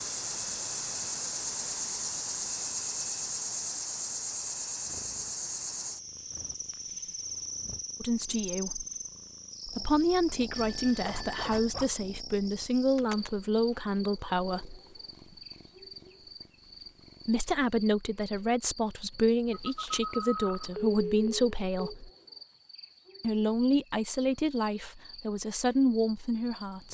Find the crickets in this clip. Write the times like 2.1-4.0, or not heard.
0.0-26.8.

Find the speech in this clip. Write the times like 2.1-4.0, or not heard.
8.0-8.8, 9.7-14.8, 17.2-22.1, 23.2-26.8.